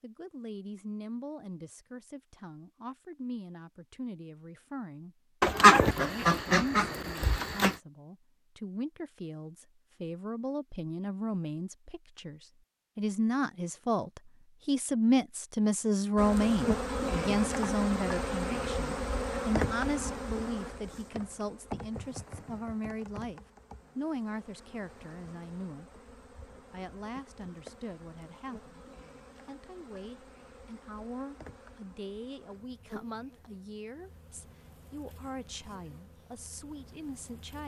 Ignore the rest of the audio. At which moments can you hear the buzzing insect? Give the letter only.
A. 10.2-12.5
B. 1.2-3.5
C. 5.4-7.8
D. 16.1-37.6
D.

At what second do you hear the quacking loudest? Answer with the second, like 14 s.
6 s.